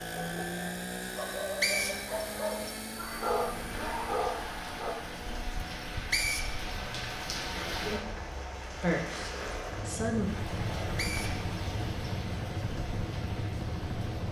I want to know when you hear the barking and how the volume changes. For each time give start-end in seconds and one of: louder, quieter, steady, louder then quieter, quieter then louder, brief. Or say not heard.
0.0-5.0 louder.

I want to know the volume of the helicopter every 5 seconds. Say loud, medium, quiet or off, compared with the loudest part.
loud, medium, loud.